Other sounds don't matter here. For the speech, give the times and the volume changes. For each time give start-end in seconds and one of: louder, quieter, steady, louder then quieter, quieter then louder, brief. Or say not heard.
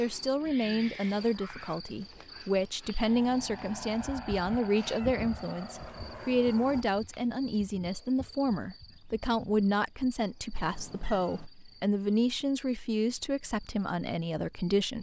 0.0-14.9 steady.